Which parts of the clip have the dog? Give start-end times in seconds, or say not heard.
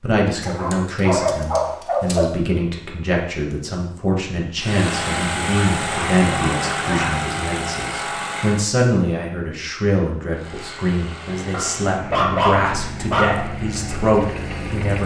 0.4-2.2, 5.5-7.2, 11.5-13.4.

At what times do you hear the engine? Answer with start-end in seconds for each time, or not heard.
4.5-8.7, 10.3-15.0.